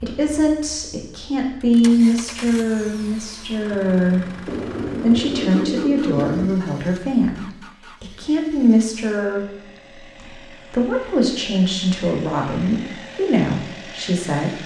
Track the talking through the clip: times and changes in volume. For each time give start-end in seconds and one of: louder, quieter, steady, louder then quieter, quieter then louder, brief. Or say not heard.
0.0-14.6 steady.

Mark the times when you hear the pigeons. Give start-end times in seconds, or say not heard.
4.5-6.5.